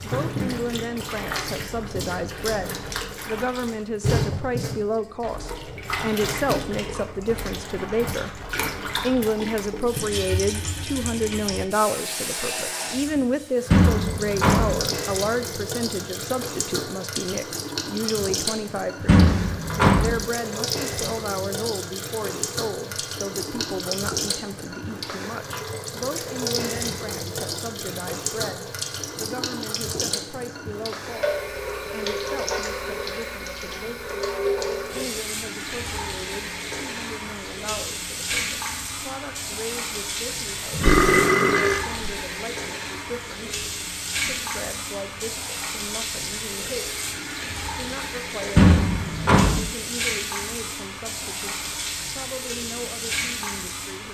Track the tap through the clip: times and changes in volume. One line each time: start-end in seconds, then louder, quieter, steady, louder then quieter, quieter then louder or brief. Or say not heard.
0.0-54.0 steady.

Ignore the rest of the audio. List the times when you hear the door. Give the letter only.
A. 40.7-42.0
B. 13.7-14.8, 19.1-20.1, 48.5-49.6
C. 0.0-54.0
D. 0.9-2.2
B.